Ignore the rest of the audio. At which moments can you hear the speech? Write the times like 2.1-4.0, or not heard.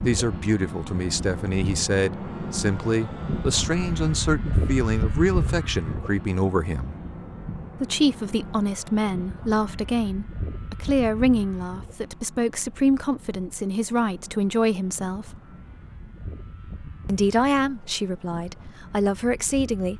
0.0-7.0, 7.8-15.3, 17.1-19.9.